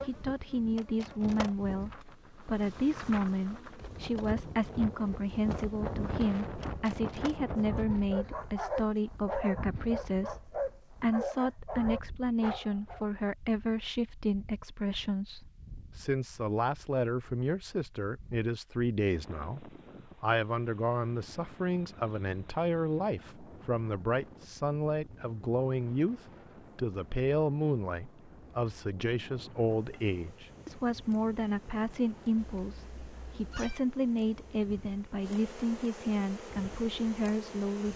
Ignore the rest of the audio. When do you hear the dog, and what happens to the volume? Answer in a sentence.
You can hear the dog from 7.5 to 13.1 s, at a steady volume.